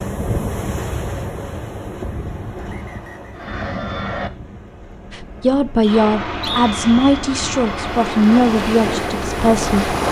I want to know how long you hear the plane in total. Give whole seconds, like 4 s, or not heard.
7 s.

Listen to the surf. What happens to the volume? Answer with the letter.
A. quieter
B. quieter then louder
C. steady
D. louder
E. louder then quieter
B.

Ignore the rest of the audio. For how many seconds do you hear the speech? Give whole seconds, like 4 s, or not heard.
5 s.